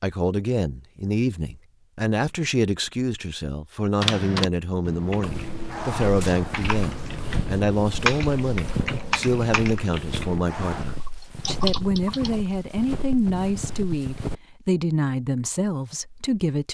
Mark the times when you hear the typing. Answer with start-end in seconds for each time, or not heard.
4.0-12.3.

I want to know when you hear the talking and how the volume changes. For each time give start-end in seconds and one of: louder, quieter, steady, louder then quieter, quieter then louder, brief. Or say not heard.
0.0-16.6 steady.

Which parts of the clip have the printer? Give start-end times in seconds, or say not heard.
not heard.